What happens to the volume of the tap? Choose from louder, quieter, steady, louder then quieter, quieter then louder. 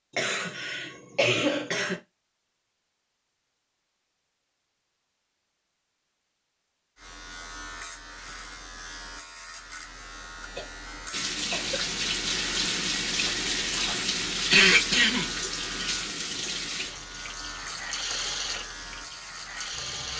quieter.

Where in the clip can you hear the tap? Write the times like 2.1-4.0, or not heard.
11.1-20.1.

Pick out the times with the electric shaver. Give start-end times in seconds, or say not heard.
7.0-20.1.